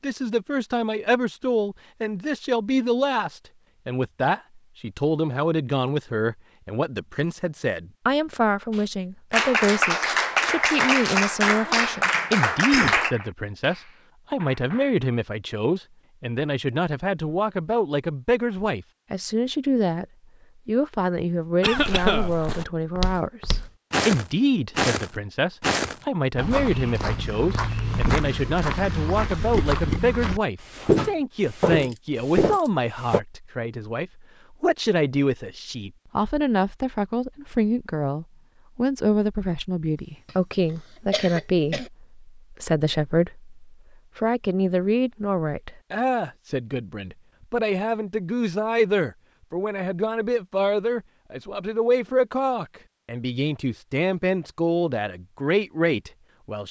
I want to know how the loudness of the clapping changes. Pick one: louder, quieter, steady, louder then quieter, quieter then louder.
quieter.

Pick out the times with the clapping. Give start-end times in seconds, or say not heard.
8.7-14.9.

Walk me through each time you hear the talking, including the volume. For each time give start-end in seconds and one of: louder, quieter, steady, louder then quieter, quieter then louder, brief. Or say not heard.
0.0-20.1 steady
20.6-56.6 steady.